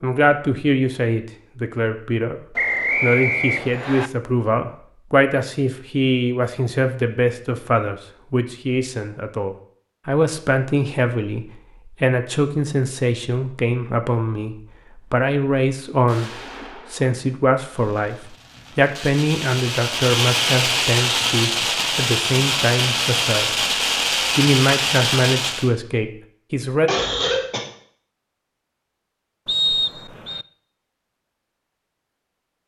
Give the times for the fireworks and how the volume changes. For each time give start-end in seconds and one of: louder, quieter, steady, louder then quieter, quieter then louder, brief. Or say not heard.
16.1-25.7 louder.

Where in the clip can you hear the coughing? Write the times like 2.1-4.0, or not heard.
26.9-27.6.